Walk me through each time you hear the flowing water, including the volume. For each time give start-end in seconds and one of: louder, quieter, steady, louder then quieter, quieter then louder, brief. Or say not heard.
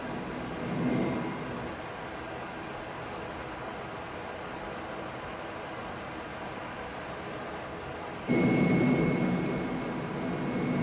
0.0-10.7 steady.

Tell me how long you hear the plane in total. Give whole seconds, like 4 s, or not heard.
4 s.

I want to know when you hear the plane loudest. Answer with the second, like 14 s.
9 s.